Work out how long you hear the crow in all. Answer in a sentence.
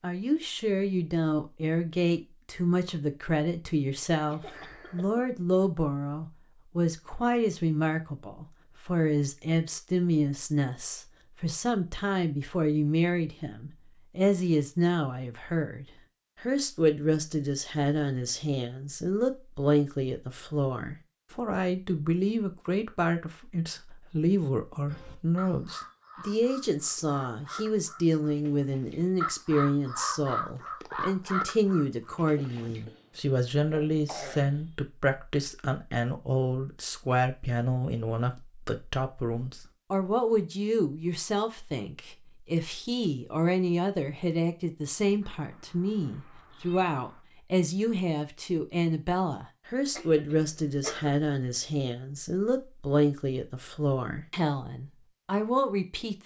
The crow can be heard for 8 seconds in total.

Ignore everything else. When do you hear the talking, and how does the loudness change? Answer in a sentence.
You can hear the talking from 0.0 to 56.2 s, at a steady volume.